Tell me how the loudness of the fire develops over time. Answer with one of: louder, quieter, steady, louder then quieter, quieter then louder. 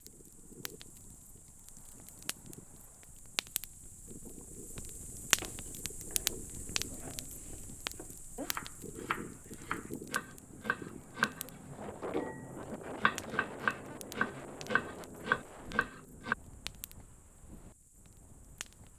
louder then quieter.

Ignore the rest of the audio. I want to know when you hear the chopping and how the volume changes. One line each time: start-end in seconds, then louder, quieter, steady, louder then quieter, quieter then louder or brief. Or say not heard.
5.3-16.4 louder.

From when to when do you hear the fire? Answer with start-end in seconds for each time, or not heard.
0.0-18.9.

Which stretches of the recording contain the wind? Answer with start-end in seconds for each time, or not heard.
0.0-18.9.